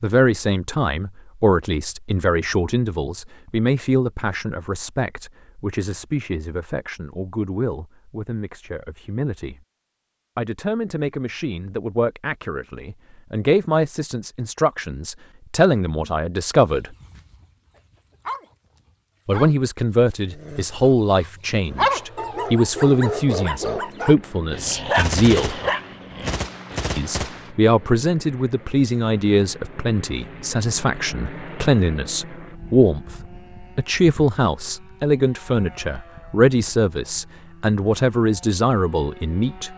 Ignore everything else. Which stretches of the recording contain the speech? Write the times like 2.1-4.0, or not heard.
0.0-9.6, 10.3-16.9, 19.2-25.6, 26.9-39.7.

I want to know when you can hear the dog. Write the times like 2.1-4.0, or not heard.
16.7-18.4, 19.3-26.9.